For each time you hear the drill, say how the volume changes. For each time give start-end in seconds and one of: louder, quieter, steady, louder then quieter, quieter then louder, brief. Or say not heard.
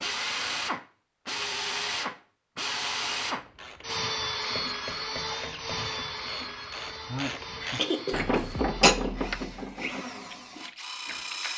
0.0-11.5 quieter.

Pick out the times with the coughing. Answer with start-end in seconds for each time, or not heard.
7.8-8.9.